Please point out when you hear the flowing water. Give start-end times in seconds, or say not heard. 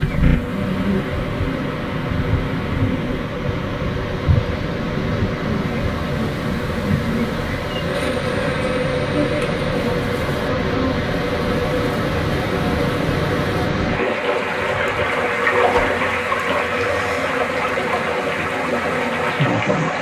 0.0-19.9.